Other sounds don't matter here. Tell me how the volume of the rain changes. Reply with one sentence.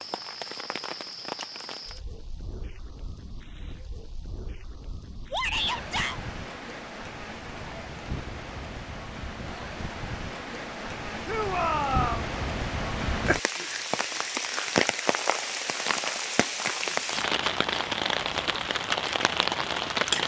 The loudness of the rain goes up.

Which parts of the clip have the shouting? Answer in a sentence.
You can hear the shouting from 5.3 to 6.2 s and from 11.2 to 12.3 s.